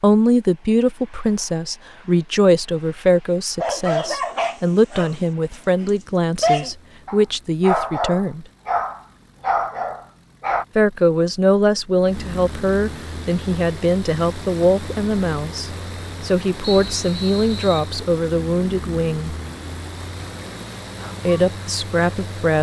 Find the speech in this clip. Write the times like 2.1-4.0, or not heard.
0.0-8.4, 10.8-19.4, 21.2-22.5.